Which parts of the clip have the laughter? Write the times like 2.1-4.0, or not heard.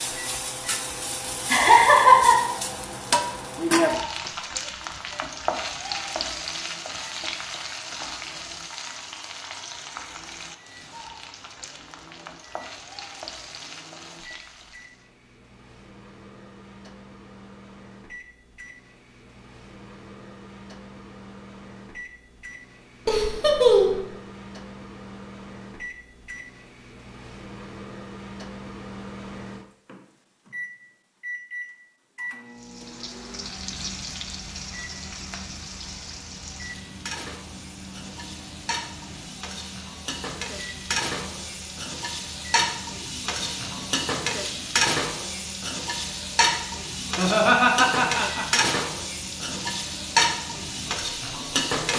1.5-2.4, 23.1-24.0, 47.1-48.8.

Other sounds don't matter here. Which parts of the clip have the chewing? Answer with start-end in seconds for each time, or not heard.
not heard.